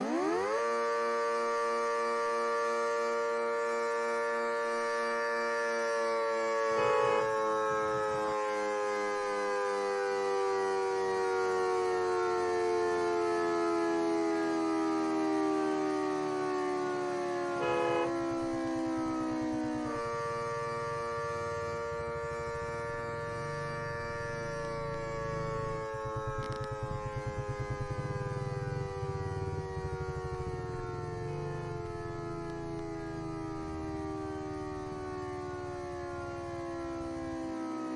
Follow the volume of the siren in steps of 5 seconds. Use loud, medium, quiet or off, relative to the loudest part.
loud, loud, loud, loud, medium, medium, medium, medium.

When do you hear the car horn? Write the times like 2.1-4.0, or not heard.
6.7-8.3, 17.6-18.2, 31.2-31.8.